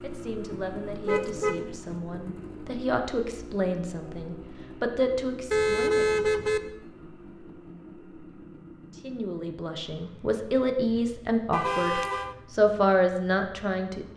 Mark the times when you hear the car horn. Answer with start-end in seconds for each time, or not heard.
1.1-1.8, 5.5-6.6, 11.5-12.3.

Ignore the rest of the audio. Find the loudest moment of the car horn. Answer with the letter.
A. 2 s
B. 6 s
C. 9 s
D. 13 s
B.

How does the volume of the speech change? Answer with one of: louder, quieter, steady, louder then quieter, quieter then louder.
louder.